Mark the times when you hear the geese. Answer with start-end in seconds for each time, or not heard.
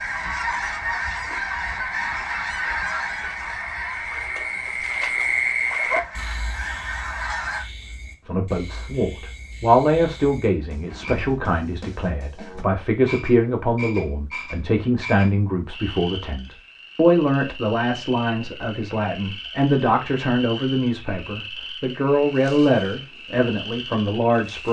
0.0-7.7.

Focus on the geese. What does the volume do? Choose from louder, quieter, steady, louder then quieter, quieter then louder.
quieter then louder.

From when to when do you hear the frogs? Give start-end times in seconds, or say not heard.
0.0-24.6.